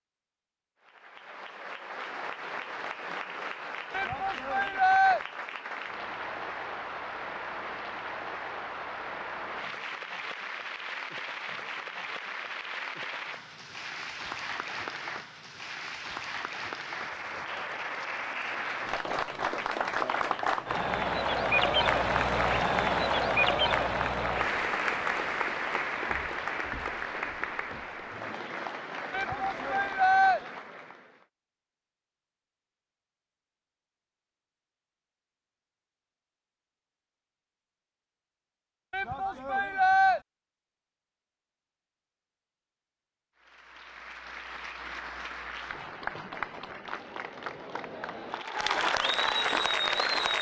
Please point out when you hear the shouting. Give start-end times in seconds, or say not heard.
3.9-5.2, 29.1-30.4, 38.9-40.2.